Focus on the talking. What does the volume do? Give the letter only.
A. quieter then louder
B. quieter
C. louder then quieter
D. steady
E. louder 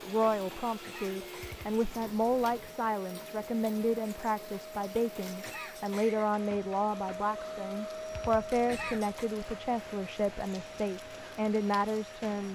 D.